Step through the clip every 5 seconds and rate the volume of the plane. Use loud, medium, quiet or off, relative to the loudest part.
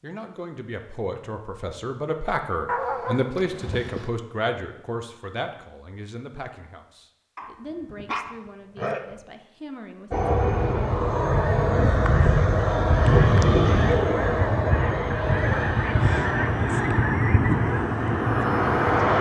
off, off, loud, medium.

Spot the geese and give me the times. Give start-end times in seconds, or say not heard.
11.2-19.1.